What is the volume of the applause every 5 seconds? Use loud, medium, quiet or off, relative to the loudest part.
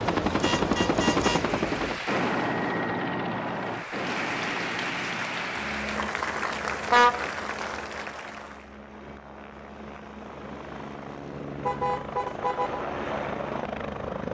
loud, loud, off.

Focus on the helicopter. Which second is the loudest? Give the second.
1 s.